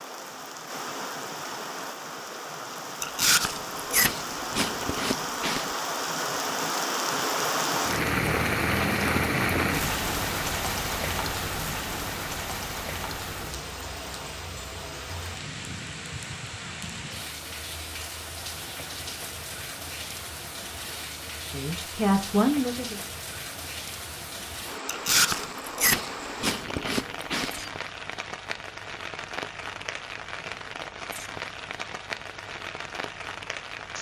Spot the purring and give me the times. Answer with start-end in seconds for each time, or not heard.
not heard.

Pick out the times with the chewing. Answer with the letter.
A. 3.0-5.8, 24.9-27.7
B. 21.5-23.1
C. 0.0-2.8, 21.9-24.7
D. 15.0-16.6
A.